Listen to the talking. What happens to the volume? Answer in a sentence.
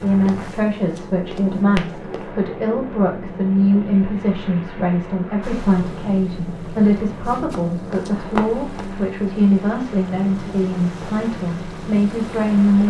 The loudness of the talking stays about the same.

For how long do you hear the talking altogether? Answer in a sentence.
You can hear the talking for 13 seconds altogether.